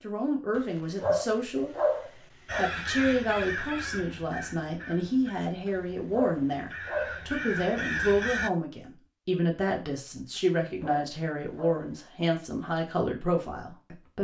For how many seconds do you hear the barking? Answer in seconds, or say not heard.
6 s.